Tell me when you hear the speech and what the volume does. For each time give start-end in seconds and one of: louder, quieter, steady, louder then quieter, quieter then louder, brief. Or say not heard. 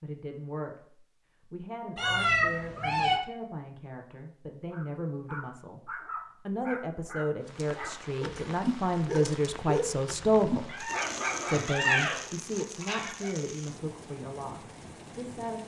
0.0-0.8 brief
1.4-10.7 louder
11.4-15.6 quieter.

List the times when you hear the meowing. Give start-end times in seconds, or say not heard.
1.9-3.1, 10.7-12.2.